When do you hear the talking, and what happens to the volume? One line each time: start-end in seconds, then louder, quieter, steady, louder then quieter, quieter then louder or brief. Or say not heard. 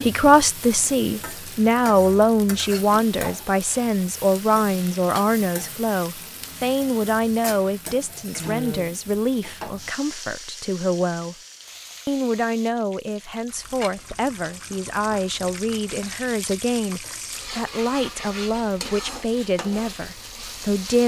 0.0-11.3 quieter
12.1-21.0 steady.